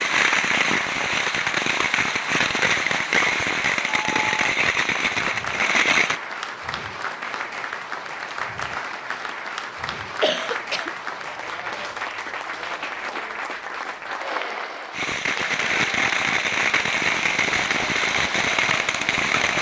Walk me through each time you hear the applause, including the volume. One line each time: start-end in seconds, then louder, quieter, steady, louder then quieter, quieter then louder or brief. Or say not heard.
0.0-19.5 steady.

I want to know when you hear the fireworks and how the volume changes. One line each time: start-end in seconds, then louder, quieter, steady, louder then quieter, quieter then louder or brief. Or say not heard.
0.0-6.2 steady
14.9-19.5 steady.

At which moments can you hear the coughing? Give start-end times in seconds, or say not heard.
10.2-10.9.